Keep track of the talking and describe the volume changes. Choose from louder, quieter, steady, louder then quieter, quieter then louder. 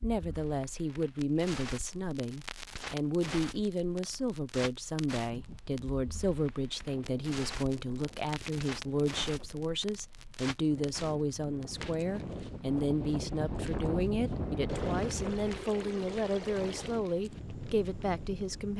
steady.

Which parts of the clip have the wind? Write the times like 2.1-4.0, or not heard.
5.2-18.4.